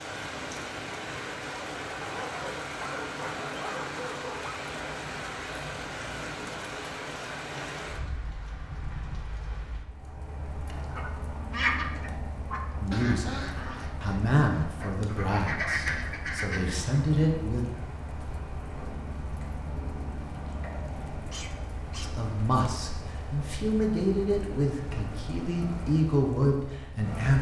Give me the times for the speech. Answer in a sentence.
You can hear the speech from 12.8 to 13.3 s, from 14.0 to 17.6 s and from 22.0 to 27.3 s.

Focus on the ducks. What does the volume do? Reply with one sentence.
The loudness of the ducks goes down, then up.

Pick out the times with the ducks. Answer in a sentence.
You can hear the ducks from 10.8 to 17.0 s.